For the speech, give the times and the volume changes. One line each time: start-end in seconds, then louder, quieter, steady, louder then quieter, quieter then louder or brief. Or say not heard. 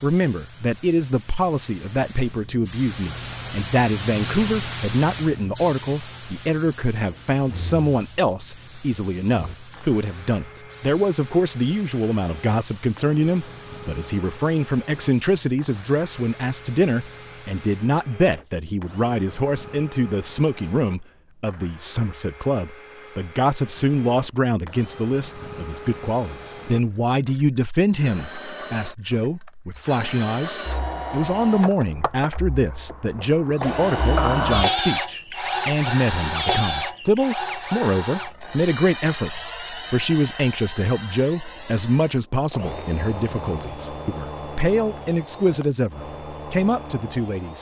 0.0-47.5 steady.